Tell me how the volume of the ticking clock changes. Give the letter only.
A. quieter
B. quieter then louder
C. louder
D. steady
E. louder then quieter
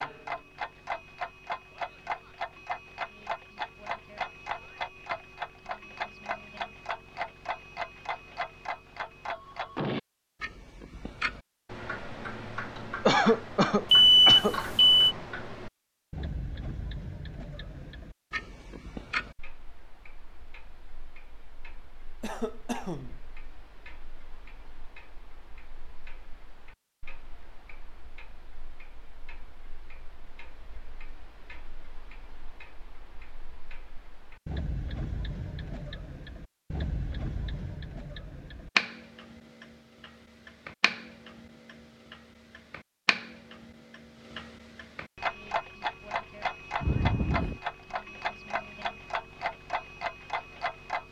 B.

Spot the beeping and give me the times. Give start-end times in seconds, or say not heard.
13.9-15.2.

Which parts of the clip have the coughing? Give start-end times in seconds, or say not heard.
13.1-14.6, 22.2-23.2, 46.8-47.6.